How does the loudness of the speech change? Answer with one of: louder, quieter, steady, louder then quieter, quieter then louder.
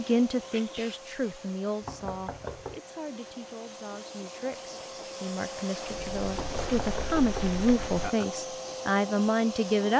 quieter then louder.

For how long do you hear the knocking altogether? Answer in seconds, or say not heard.
3 s.